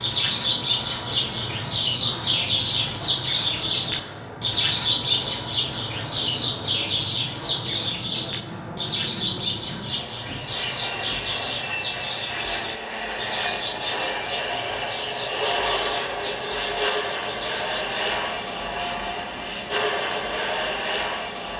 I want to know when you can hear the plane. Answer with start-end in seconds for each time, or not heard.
0.0-21.5.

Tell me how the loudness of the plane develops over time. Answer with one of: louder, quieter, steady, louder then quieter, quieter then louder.
louder.